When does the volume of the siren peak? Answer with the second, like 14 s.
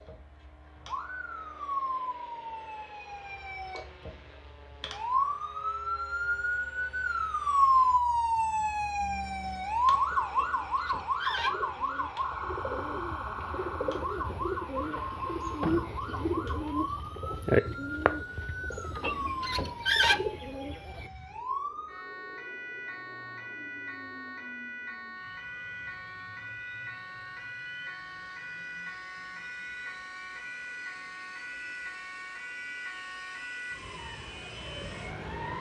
8 s.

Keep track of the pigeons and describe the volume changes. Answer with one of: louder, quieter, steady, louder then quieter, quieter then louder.
louder.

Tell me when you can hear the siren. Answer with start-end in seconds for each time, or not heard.
0.0-35.5.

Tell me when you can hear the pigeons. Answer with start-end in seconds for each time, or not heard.
10.1-21.1.